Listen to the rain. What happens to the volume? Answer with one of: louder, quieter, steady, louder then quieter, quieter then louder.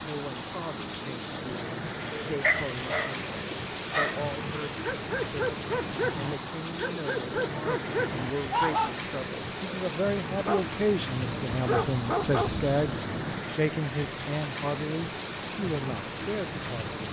steady.